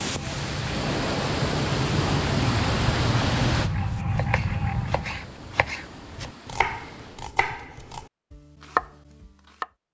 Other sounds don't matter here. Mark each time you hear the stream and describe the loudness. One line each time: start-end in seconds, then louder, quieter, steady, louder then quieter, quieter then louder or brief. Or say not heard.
0.0-7.3 quieter.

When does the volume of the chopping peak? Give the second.
9 s.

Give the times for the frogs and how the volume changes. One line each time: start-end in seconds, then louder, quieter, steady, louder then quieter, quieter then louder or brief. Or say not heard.
0.0-5.3 louder.